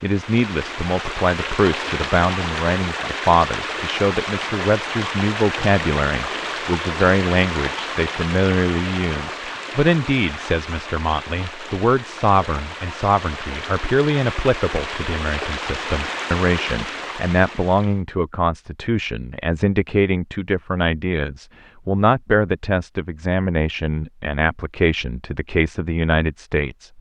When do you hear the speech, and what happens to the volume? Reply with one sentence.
The speech can be heard from 0.0 to 26.9 s, at a steady volume.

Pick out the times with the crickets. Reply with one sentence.
The crickets can't be heard in this clip.